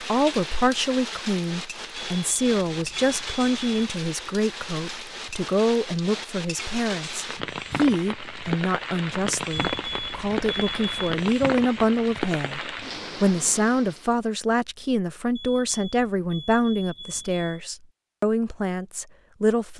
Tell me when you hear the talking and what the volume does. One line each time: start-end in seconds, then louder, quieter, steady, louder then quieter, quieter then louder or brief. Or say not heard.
0.0-19.7 steady.